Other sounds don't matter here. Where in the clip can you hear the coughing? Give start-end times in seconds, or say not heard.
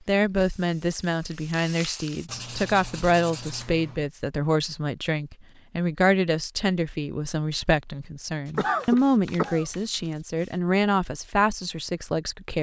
8.6-9.7.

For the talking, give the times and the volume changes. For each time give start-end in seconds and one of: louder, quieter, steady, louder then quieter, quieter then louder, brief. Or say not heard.
0.1-12.5 steady.